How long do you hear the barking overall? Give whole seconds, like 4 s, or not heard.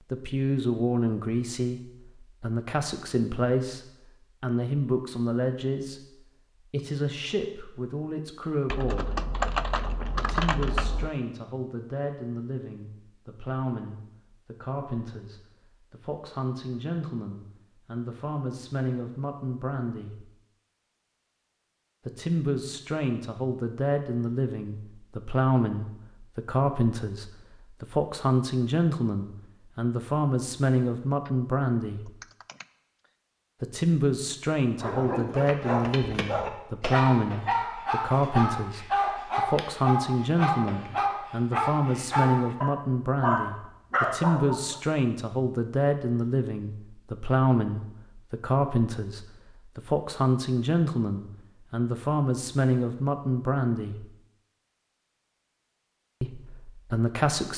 10 s.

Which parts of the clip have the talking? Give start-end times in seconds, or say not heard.
0.1-9.2, 10.2-20.2, 22.1-32.1, 33.6-54.0, 56.2-57.5.